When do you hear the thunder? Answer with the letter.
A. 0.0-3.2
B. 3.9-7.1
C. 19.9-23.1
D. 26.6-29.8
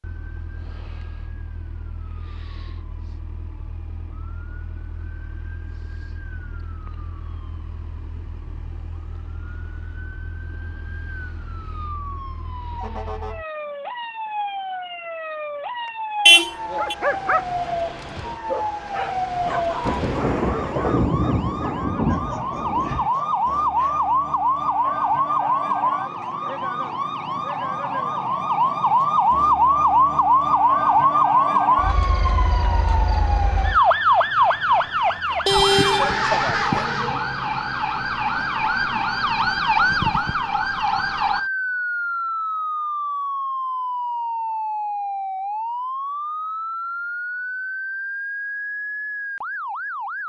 C.